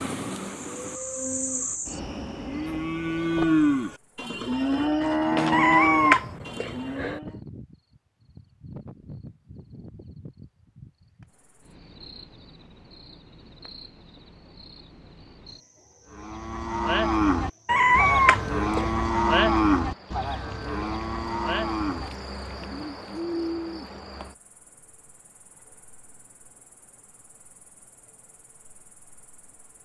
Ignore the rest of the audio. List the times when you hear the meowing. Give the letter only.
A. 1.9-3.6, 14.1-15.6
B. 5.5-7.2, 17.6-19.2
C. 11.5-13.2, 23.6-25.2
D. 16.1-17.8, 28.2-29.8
B.